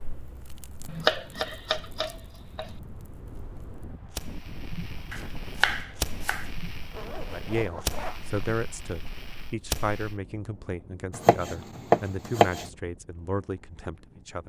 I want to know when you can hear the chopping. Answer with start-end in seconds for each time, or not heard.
0.8-2.6, 5.1-6.5, 11.1-12.7.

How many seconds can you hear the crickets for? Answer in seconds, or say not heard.
not heard.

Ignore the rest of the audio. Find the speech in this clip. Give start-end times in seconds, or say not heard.
7.2-14.4.